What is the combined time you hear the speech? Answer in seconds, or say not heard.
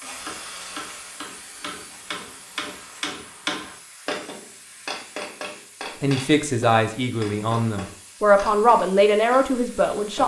4 s.